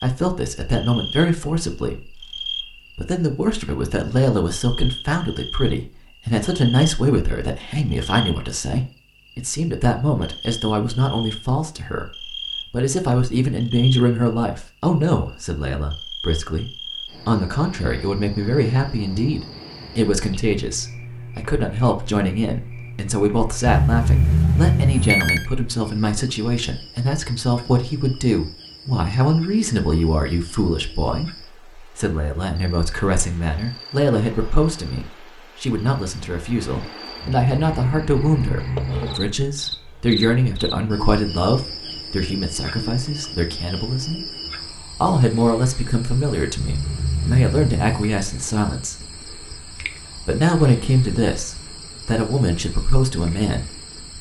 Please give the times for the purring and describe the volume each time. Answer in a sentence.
The purring can't be heard in this clip.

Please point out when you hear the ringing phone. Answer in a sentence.
You can hear the ringing phone from 23.6 to 25.5 s and from 46.6 to 48.1 s.